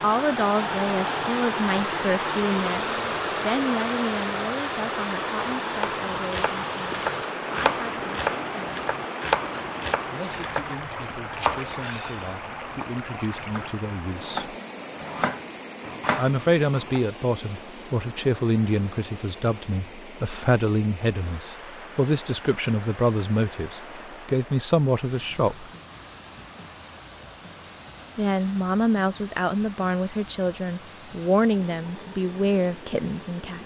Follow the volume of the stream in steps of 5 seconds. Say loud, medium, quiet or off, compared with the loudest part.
loud, loud, medium, quiet, quiet, quiet, quiet.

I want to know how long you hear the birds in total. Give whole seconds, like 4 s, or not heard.
not heard.